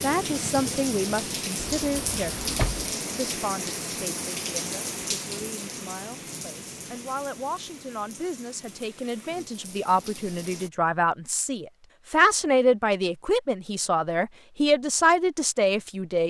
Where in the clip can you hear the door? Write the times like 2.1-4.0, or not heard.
1.6-2.9.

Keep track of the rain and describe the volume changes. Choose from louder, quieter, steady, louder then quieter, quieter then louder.
quieter.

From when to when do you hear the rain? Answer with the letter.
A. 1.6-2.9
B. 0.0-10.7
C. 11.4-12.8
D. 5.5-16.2
B.